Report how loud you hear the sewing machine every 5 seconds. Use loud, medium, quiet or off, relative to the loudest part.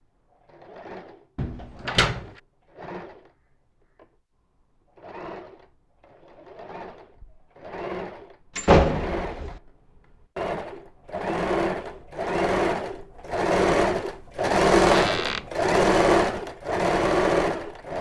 quiet, quiet, loud, loud.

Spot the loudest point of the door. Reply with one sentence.
The volume of the door peaks at 9 seconds.